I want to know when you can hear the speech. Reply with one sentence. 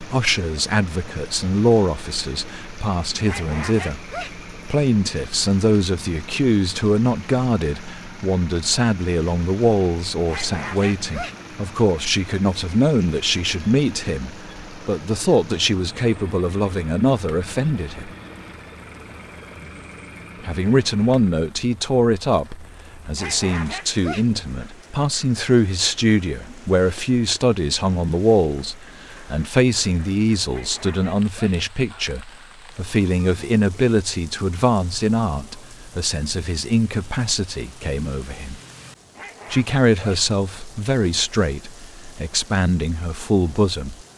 You can hear the speech from 0.0 to 18.1 s, from 20.4 to 38.6 s and from 39.5 to 44.0 s.